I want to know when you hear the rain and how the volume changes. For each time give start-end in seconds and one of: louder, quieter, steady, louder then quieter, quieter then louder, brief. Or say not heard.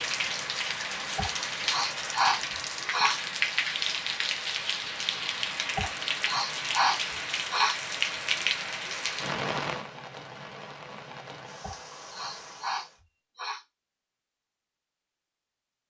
0.0-13.0 quieter.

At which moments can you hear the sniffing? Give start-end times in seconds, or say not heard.
1.1-3.2, 5.8-7.8, 11.6-13.6.